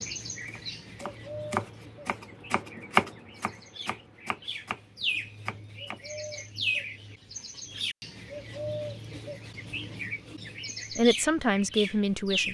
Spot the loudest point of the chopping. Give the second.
3 s.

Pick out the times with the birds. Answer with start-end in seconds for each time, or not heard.
0.0-12.5.